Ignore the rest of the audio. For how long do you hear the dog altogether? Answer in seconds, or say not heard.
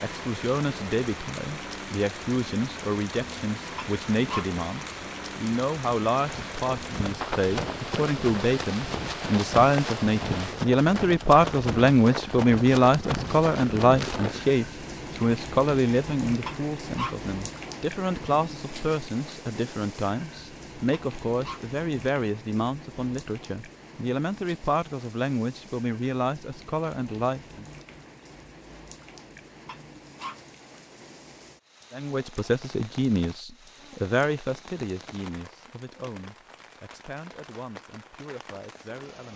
3 s.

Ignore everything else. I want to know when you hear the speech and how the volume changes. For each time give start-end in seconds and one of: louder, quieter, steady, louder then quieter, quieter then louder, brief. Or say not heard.
0.0-27.6 louder then quieter
31.9-39.3 quieter.